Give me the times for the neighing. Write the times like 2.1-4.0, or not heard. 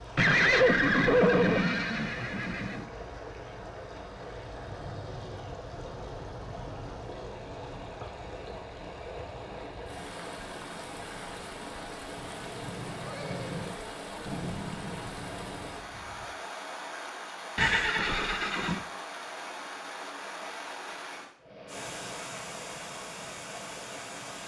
0.1-2.9, 12.2-13.8, 17.6-18.9.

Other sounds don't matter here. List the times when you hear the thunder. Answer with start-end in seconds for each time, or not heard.
4.6-8.0, 14.2-16.2.